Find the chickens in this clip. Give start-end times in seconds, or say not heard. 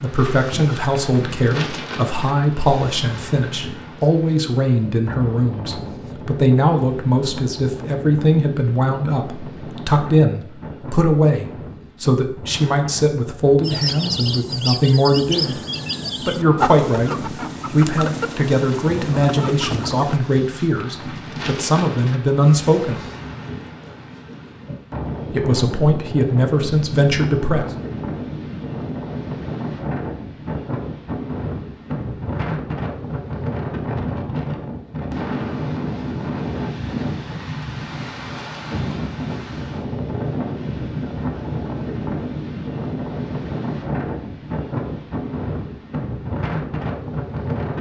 13.6-20.2.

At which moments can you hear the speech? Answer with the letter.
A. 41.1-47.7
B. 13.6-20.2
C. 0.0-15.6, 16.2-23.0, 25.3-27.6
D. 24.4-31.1
C.